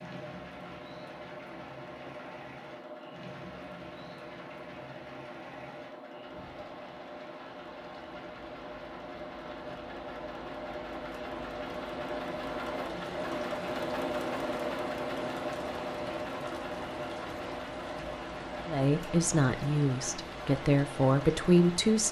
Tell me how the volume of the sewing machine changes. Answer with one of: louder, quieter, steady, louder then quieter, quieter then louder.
louder then quieter.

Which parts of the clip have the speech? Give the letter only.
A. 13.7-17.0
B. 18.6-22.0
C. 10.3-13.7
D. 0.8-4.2
B.